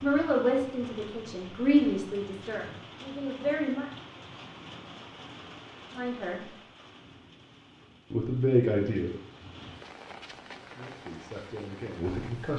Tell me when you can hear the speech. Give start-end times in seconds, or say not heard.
0.0-3.9, 6.0-6.5, 8.1-9.2, 10.6-12.5.